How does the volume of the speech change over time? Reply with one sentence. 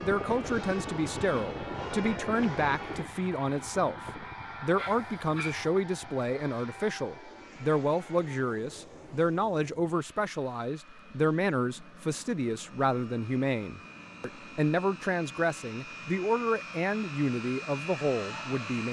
The volume of the speech stays about the same.